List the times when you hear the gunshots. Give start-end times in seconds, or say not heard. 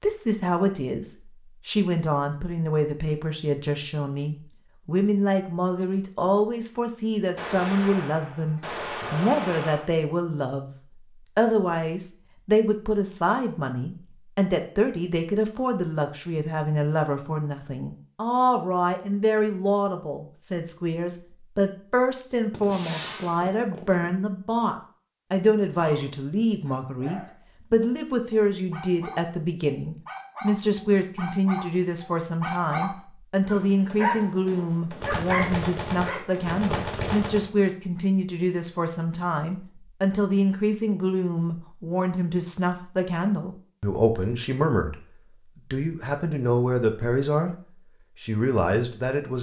7.3-9.9, 22.5-24.1, 33.5-37.5.